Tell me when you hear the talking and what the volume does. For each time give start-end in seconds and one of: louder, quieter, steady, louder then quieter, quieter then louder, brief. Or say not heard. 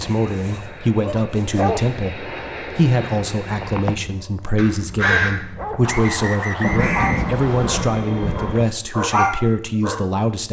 0.0-10.4 steady.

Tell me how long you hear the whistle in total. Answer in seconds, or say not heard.
2 s.